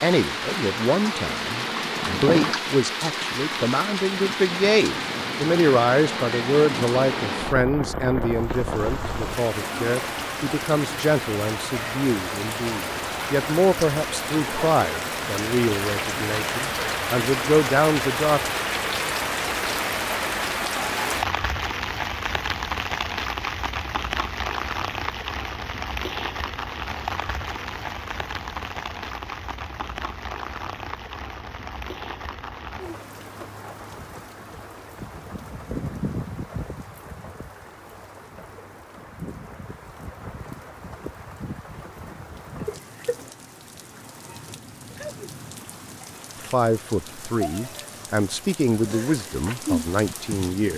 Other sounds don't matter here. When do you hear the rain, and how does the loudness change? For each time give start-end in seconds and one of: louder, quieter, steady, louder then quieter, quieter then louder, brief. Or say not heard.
0.0-50.7 quieter.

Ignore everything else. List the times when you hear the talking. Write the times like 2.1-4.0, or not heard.
0.0-18.5, 46.4-50.7.